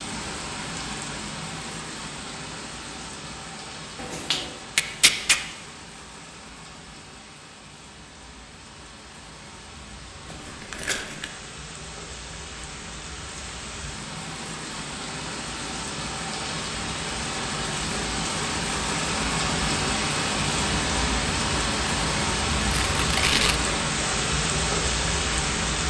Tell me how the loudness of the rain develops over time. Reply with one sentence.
The loudness of the rain goes down, then up.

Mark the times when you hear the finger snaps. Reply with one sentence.
You can hear the finger snaps from 4.0 to 4.6 s.